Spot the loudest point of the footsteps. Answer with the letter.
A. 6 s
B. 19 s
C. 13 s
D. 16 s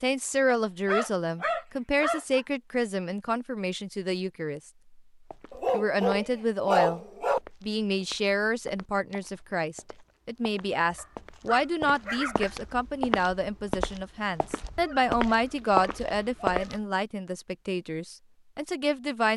D.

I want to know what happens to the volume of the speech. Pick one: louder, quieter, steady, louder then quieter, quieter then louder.
steady.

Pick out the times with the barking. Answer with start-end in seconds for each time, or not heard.
0.5-2.4, 5.5-7.4, 10.9-12.6, 14.8-16.6.